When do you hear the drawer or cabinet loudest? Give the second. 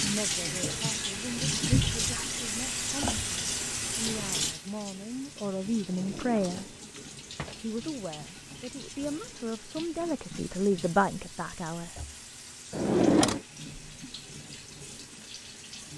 13 s.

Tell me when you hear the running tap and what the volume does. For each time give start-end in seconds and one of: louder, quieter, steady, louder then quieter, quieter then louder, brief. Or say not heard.
0.0-15.9 quieter.